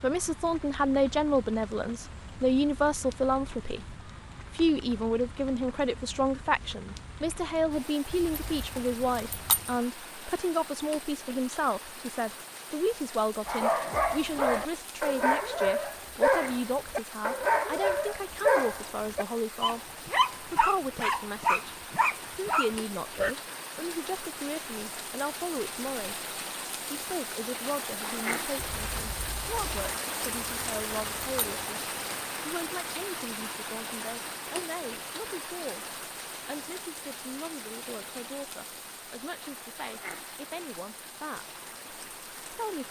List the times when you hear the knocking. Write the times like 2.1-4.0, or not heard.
not heard.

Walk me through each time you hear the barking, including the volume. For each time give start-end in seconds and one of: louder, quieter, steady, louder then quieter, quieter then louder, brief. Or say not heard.
13.4-23.4 steady.